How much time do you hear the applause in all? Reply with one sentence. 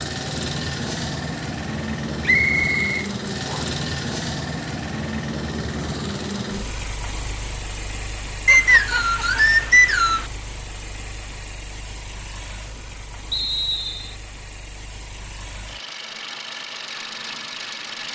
You can't hear the applause here.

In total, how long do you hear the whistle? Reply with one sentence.
You can hear the whistle for 4 seconds altogether.